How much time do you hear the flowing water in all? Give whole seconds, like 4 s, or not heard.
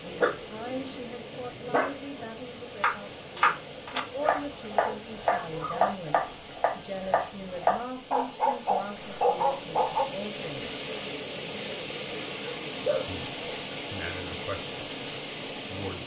16 s.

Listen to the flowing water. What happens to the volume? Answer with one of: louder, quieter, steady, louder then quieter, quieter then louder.
louder.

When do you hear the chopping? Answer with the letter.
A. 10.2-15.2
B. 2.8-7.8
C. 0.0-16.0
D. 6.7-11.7
B.